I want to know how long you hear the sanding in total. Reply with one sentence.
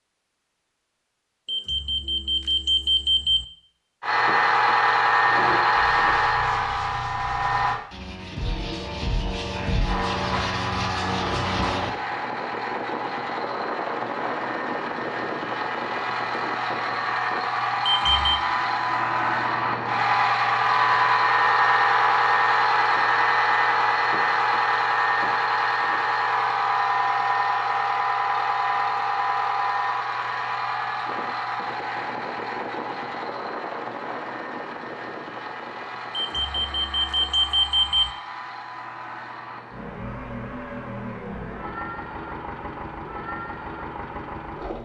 You can hear the sanding for 7 seconds altogether.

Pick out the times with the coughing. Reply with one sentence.
You can't hear the coughing here.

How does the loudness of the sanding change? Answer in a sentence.
The loudness of the sanding goes up.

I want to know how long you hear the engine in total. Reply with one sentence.
The engine can be heard for 39 seconds in total.